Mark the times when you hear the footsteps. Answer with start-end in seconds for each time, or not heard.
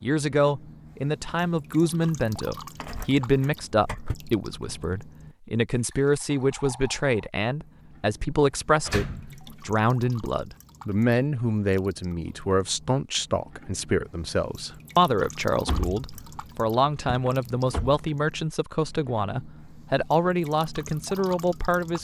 not heard.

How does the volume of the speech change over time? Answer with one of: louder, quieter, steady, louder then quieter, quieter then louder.
steady.